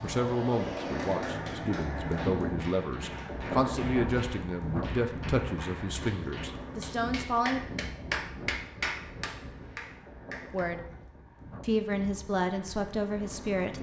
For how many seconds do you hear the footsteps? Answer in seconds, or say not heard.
not heard.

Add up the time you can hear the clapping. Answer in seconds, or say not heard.
10 s.